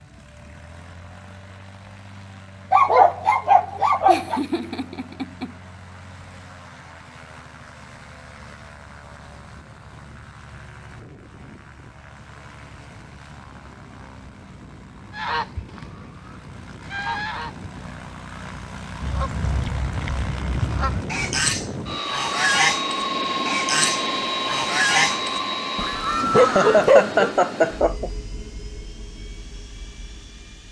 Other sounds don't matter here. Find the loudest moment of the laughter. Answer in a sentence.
The volume of the laughter peaks at 27 seconds.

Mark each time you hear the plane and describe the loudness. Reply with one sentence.
You can hear the plane from 0.0 to 30.6 s, getting louder.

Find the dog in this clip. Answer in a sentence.
You can hear the dog from 2.7 to 4.4 s and from 25.8 to 27.1 s.